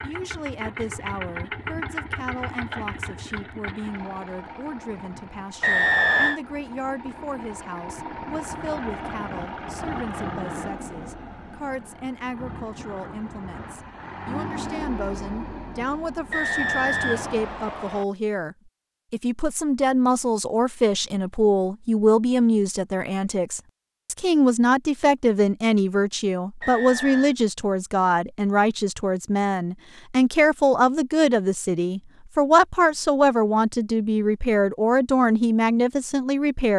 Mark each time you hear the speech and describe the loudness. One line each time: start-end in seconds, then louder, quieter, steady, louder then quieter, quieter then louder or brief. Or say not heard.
0.0-36.7 louder.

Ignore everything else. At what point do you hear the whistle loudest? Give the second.
6 s.